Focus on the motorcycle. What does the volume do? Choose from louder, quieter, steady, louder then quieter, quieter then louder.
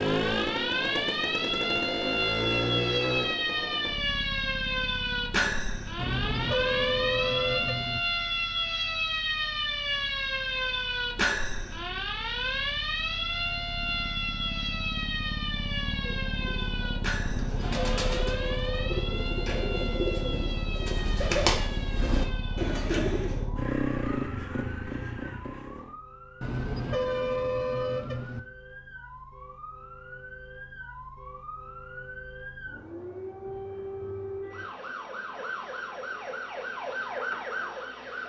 quieter then louder.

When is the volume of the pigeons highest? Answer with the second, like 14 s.
21 s.